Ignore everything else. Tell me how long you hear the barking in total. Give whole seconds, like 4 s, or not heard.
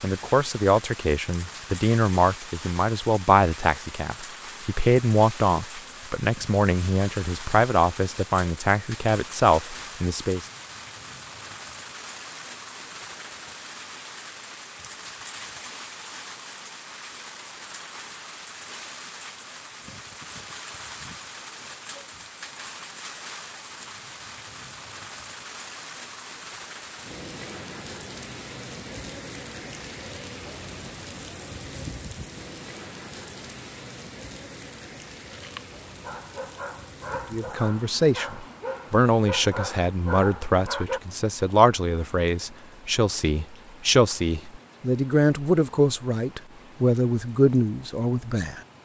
6 s.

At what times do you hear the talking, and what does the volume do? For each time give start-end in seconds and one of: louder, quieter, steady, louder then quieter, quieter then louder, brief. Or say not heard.
0.0-10.4 steady
37.3-48.6 steady.